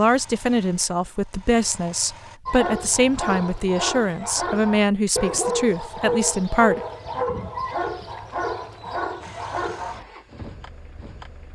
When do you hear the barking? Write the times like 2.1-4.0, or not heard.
2.5-10.1.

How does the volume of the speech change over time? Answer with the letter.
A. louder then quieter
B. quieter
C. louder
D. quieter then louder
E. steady
E.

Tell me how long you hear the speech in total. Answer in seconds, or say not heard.
7 s.